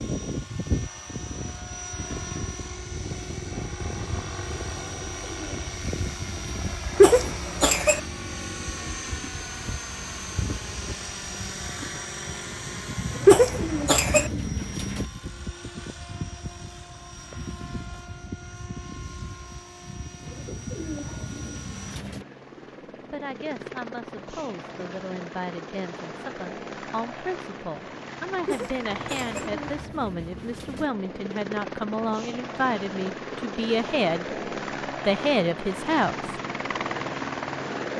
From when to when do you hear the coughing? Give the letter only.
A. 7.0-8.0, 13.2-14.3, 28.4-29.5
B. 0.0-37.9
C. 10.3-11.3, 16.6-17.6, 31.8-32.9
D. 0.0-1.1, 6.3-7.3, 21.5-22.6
A.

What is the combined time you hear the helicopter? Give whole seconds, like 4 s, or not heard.
38 s.